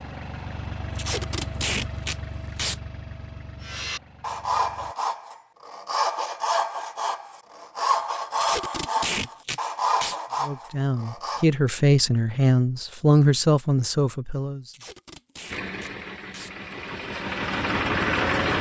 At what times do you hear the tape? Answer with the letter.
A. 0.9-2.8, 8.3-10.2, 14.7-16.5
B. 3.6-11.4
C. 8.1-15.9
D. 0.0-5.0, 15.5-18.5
A.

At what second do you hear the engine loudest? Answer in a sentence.
The volume of the engine peaks at 18 seconds.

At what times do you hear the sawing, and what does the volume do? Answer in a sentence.
The sawing can be heard from 3.6 to 11.4 s, at a steady volume.